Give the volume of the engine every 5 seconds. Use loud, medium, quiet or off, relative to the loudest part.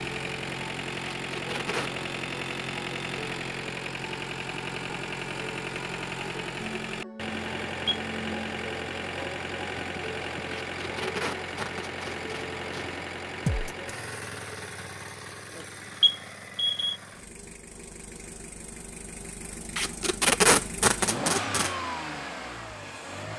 loud, loud, loud, medium, loud.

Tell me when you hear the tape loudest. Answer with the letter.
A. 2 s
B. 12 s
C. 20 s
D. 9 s
C.